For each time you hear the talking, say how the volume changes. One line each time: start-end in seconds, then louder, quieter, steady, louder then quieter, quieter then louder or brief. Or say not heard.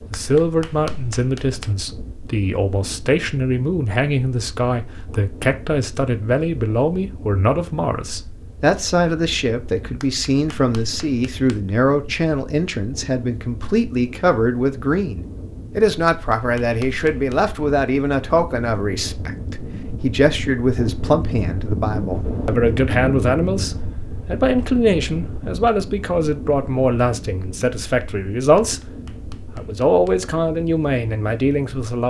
0.1-32.0 steady.